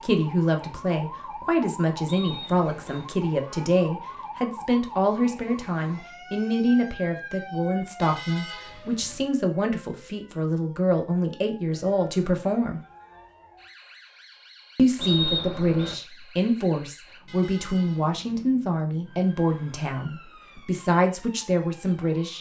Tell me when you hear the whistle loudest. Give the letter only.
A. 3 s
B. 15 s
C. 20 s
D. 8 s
B.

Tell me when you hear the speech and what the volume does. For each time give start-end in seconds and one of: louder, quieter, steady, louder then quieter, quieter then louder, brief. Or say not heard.
0.0-12.8 steady
14.8-22.3 steady.